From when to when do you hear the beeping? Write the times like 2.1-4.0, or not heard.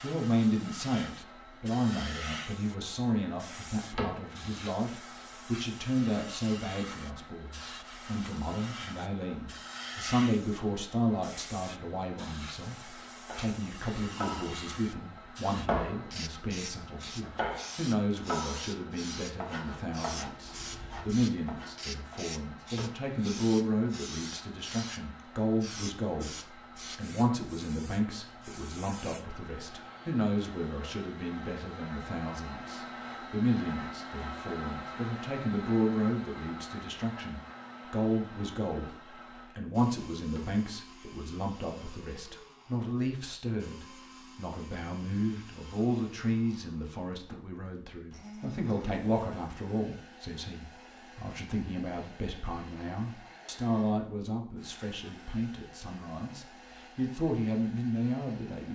not heard.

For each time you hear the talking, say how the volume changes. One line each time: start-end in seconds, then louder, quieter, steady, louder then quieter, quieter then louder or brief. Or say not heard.
0.0-58.6 steady.